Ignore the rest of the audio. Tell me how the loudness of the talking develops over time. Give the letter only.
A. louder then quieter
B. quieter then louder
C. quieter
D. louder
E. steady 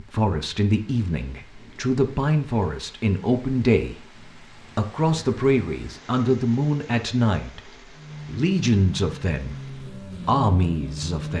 E.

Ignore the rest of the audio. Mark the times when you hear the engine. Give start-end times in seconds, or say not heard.
7.9-11.3.